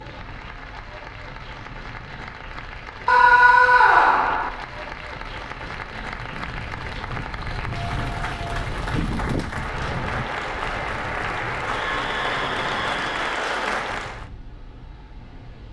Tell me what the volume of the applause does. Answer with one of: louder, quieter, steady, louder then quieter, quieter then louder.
louder.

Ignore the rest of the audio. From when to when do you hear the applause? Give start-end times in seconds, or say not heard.
0.0-14.2.